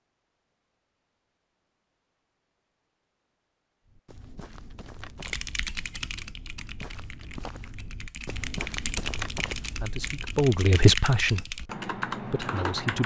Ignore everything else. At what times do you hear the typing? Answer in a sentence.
You can hear the typing from 5.2 to 13.0 s.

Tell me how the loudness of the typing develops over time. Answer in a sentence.
The volume of the typing goes down, then up.